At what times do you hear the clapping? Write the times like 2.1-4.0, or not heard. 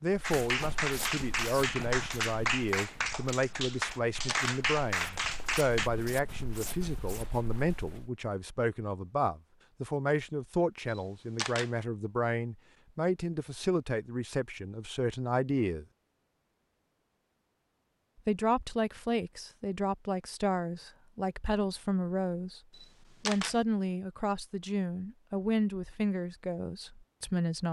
0.2-5.9.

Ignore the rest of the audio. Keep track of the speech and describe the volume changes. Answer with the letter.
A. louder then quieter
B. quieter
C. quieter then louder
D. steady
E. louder
D.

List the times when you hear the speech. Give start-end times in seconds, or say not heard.
0.0-15.8, 18.2-22.6, 23.2-27.6.